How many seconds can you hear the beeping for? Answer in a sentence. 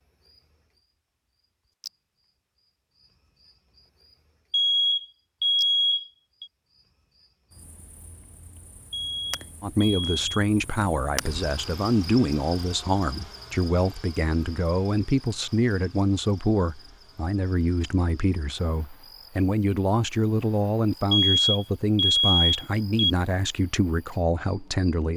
The beeping can be heard for 5 seconds in total.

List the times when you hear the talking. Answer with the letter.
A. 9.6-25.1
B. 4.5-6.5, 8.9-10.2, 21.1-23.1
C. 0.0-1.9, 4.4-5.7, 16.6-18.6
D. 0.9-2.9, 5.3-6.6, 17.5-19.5
A.